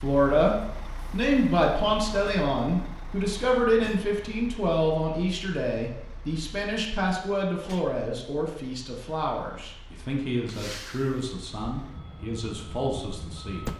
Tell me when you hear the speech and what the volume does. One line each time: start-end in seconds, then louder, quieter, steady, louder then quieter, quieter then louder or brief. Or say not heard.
0.0-13.7 quieter.